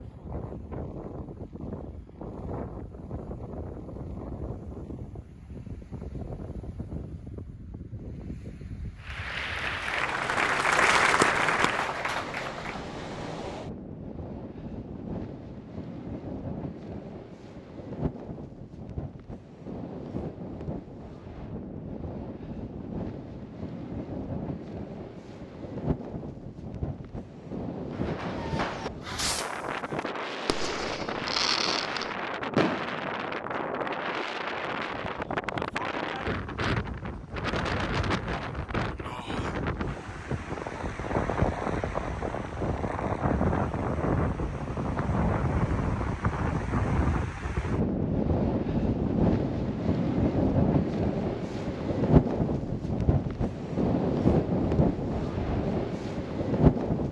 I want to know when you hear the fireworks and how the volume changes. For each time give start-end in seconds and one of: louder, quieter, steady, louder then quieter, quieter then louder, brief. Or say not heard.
27.9-33.0 louder.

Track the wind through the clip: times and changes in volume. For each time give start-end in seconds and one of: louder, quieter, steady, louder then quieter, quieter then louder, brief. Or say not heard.
0.0-57.0 louder.